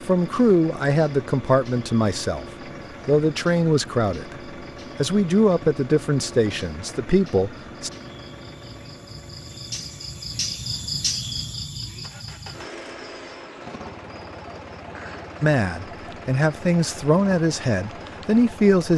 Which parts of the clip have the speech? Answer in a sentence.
You can hear the speech from 0.1 to 2.5 s, from 3.0 to 4.3 s, from 5.0 to 7.9 s and from 15.4 to 18.9 s.